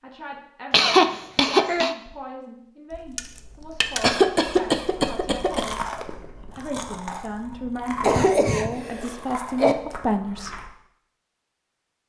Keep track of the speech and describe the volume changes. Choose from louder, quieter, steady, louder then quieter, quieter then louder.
louder.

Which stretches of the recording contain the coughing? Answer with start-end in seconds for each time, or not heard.
0.7-1.9, 4.0-5.7, 8.0-9.8.